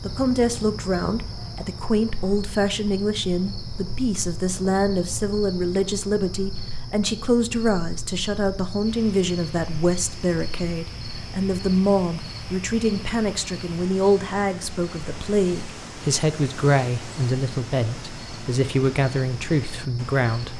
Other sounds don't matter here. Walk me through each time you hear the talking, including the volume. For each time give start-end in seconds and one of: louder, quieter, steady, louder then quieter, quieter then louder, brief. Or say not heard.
0.0-20.5 steady.